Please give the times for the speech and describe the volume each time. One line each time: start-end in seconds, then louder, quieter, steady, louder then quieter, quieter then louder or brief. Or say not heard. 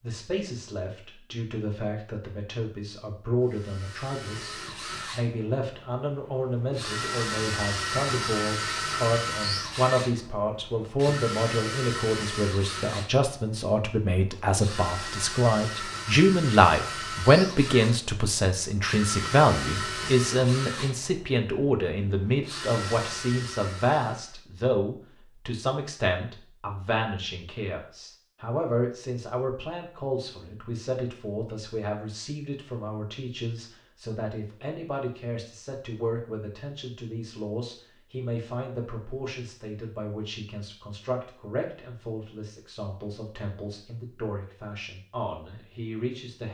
0.0-46.4 louder then quieter.